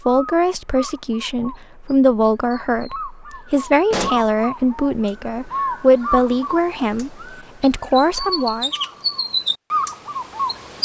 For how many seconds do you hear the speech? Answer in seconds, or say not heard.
9 s.